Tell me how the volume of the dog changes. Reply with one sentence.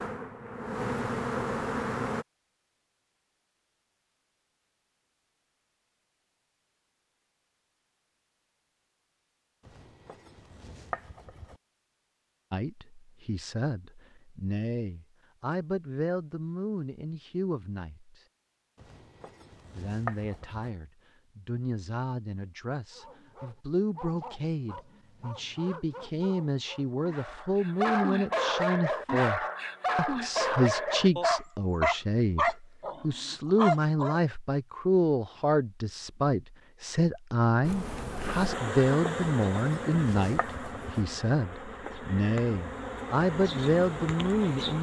The volume of the dog goes up.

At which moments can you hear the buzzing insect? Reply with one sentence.
The buzzing insect can be heard from 0.0 to 2.2 s and from 37.6 to 44.7 s.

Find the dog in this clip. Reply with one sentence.
The dog can be heard from 22.9 to 34.2 s.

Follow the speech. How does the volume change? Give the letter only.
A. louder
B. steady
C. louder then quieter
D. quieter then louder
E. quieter
A.